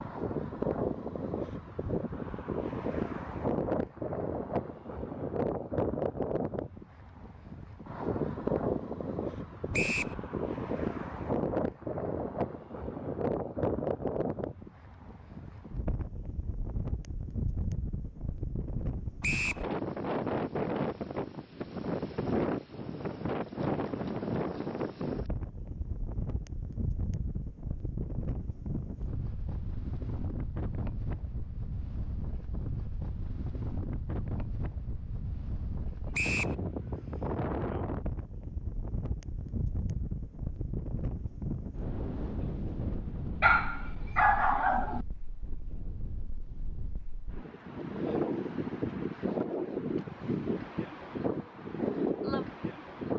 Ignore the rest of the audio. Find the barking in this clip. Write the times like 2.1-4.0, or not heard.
43.4-45.0.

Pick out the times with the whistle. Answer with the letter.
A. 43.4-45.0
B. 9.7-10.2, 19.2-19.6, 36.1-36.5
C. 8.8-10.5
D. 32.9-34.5
B.